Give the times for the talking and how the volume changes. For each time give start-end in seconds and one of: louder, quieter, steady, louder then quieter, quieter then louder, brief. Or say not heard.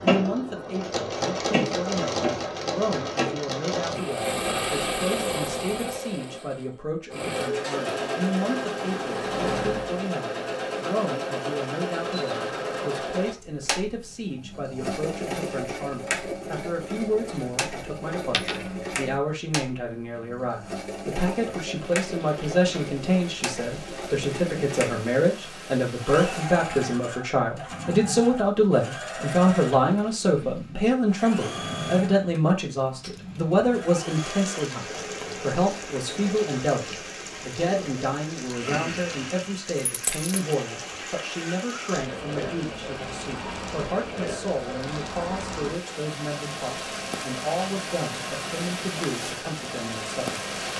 0.0-50.5 louder then quieter.